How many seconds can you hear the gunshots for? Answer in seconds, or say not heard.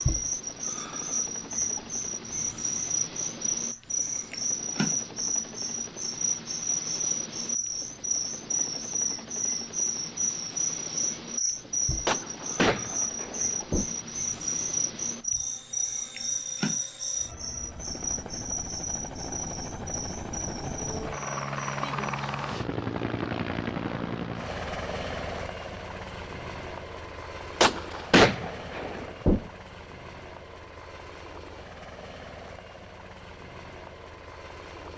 4 s.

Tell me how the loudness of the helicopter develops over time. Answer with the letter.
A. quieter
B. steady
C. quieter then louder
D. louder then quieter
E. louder
D.